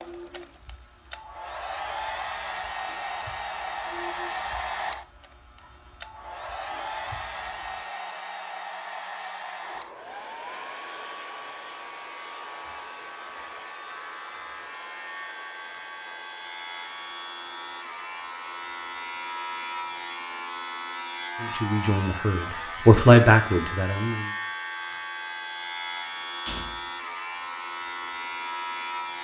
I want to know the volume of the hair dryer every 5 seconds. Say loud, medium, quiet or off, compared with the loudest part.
loud, loud, medium, quiet, quiet, quiet.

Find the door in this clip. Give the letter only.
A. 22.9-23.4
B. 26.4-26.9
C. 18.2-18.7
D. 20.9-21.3
B.